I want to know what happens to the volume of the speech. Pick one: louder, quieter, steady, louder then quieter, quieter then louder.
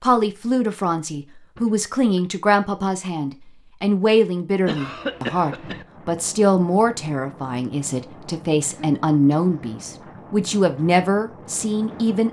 steady.